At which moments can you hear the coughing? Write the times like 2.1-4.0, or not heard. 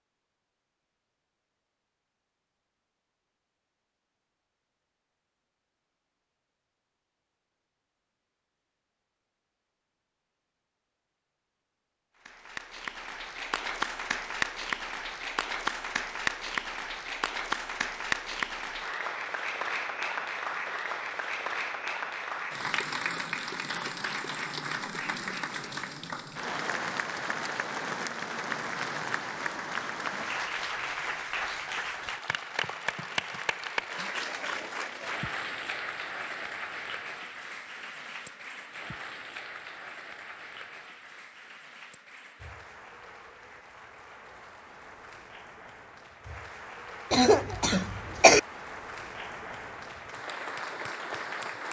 47.1-48.4.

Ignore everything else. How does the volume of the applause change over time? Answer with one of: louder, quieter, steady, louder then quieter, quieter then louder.
quieter.